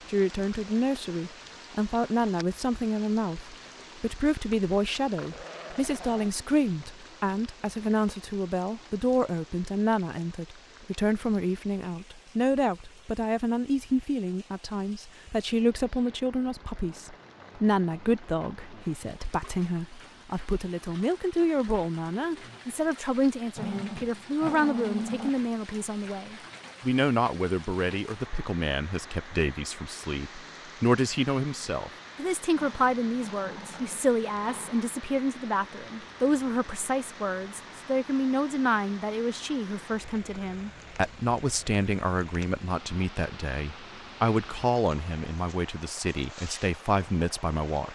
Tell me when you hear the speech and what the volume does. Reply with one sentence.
The speech can be heard from 0.1 to 47.9 s, at a steady volume.